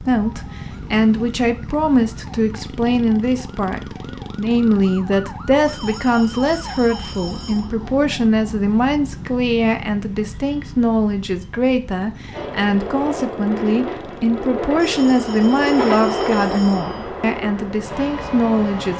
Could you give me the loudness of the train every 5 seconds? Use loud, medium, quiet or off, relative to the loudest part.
off, off, loud, loud.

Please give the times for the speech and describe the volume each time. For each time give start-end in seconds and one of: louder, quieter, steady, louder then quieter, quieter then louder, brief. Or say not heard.
0.0-18.9 steady.